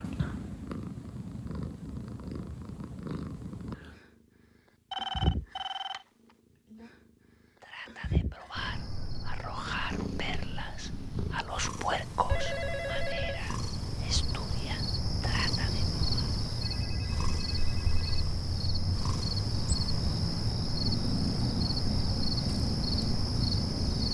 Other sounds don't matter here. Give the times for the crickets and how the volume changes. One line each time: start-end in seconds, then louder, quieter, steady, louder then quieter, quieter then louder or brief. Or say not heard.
8.6-24.0 louder.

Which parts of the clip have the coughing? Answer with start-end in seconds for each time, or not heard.
not heard.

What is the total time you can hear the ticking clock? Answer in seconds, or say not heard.
not heard.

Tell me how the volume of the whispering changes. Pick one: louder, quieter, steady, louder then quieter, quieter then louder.
louder then quieter.